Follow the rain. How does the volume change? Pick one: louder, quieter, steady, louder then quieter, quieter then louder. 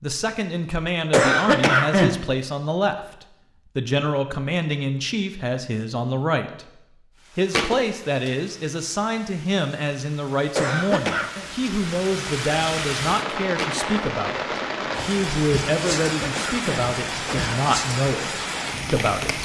louder.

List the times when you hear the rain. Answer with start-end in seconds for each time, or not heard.
7.1-19.4.